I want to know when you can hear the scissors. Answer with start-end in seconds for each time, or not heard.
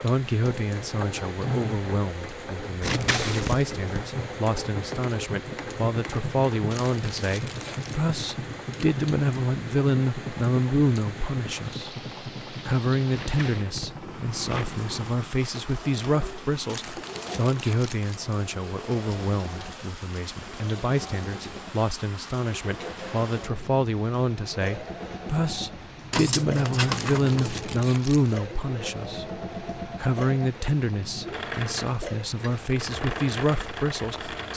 2.8-4.0, 13.1-14.8, 26.1-27.8.